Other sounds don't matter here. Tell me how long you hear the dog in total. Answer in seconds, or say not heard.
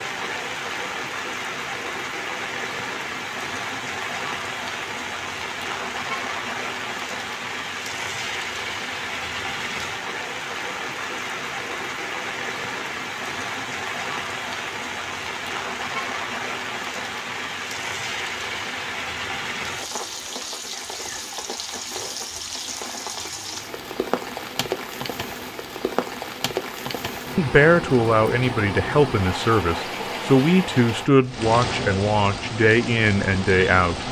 not heard.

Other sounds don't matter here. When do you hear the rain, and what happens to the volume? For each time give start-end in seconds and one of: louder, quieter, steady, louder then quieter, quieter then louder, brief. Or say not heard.
0.0-34.0 steady.